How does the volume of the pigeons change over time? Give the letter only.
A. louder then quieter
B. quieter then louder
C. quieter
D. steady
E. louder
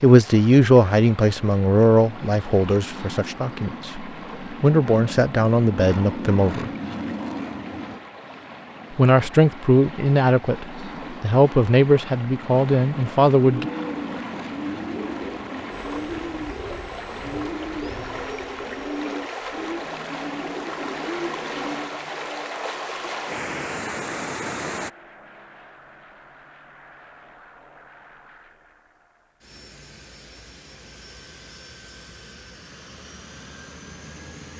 D.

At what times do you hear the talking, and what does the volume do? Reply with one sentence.
The talking can be heard from 0.0 to 6.7 s, getting quieter then louder; and from 8.9 to 13.7 s, at a steady volume.